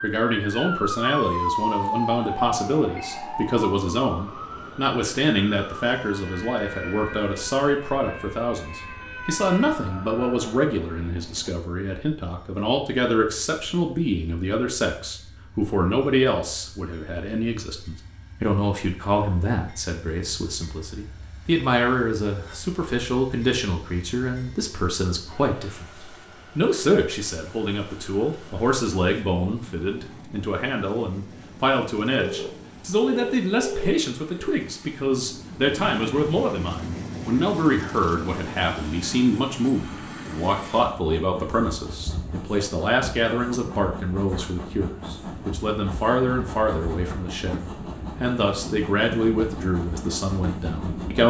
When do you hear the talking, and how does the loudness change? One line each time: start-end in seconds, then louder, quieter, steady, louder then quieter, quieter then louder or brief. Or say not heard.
0.0-51.2 steady.